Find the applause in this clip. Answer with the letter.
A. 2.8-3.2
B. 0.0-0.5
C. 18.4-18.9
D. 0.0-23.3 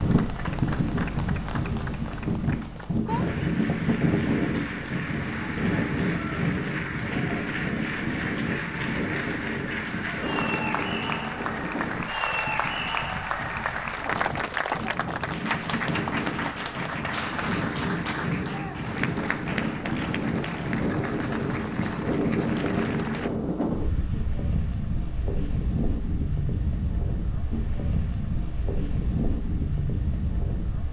D.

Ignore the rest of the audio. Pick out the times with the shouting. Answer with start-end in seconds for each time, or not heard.
18.4-18.9.